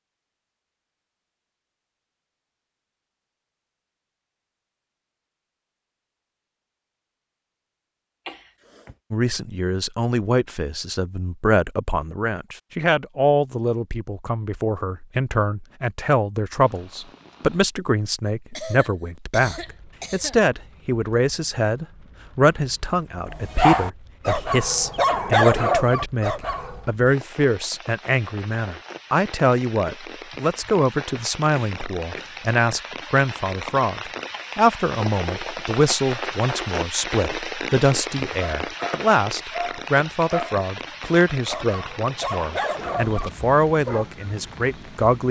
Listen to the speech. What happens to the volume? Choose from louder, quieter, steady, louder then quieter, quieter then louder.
steady.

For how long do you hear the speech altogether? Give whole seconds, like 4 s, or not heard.
36 s.